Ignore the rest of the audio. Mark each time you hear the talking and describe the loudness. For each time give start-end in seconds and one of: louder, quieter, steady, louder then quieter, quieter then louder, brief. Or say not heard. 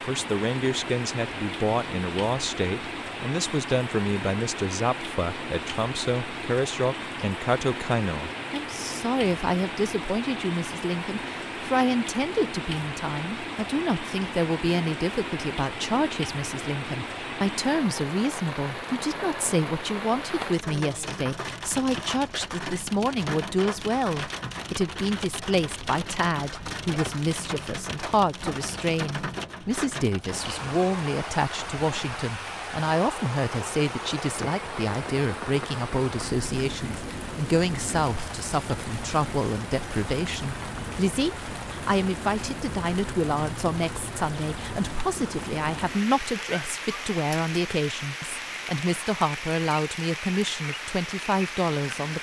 0.0-52.1 steady.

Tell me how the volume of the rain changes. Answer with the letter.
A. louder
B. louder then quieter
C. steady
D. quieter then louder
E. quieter
C.